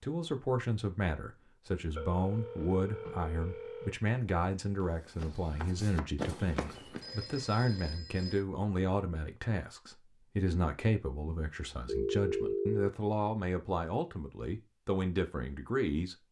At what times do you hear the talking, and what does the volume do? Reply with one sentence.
The talking can be heard from 0.0 to 16.1 s, at a steady volume.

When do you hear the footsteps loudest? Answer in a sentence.
The loudest moment of the footsteps is at 6 seconds.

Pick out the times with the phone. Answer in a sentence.
You can hear the phone from 1.9 to 4.0 s, from 7.0 to 8.4 s and from 11.8 to 12.9 s.